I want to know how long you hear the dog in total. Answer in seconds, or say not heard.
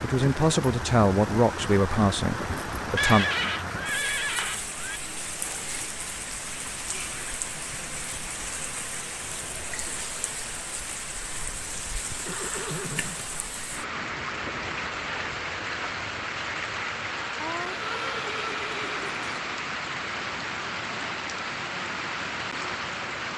not heard.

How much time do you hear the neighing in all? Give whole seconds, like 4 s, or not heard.
5 s.